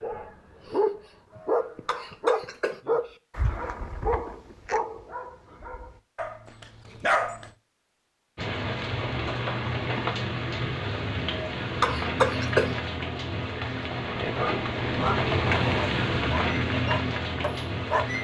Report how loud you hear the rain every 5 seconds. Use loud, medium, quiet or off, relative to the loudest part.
off, loud, loud, loud.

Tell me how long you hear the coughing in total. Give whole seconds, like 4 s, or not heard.
3 s.